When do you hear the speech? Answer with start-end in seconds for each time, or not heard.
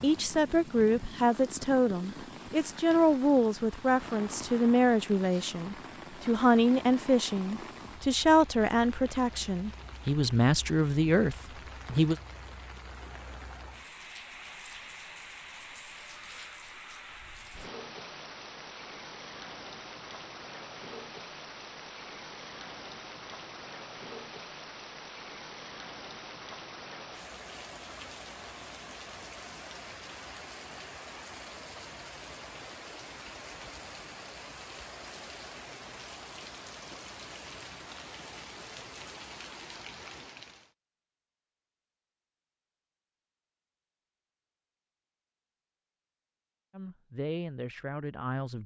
0.0-12.2, 46.7-48.6.